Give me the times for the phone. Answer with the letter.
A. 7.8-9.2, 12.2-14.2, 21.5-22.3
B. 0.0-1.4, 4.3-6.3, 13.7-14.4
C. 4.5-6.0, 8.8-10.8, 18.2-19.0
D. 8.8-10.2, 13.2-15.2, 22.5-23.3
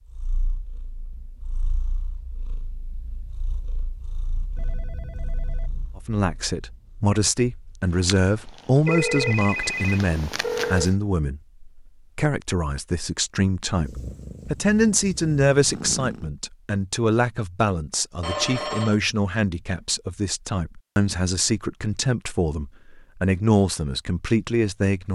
C.